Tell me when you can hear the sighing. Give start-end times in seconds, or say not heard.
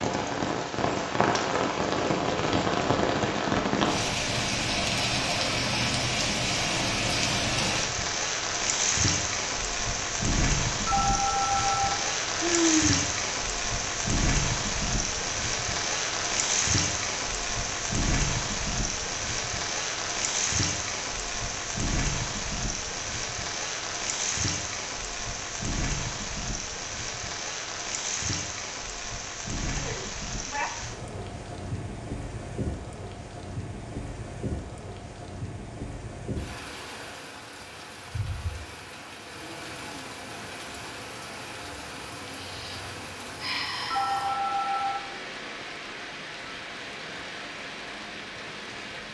12.3-13.1, 29.8-30.7, 42.3-44.4.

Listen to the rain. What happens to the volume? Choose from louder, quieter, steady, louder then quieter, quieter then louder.
quieter.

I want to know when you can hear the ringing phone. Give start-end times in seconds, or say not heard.
10.8-12.0, 43.9-45.0.